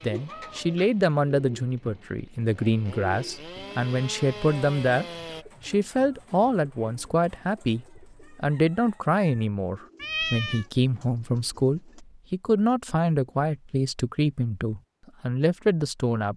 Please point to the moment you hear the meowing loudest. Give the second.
10 s.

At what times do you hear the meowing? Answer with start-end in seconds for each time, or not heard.
0.2-0.8, 10.0-10.7.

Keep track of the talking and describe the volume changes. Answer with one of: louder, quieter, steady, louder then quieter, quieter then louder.
steady.